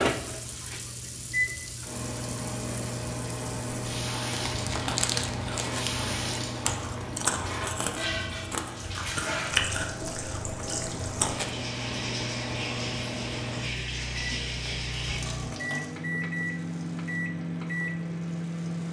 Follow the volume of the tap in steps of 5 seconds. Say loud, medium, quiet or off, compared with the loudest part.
medium, loud, loud, medium.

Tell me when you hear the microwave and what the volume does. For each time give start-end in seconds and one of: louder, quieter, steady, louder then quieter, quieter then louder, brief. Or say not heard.
0.0-18.8 quieter then louder.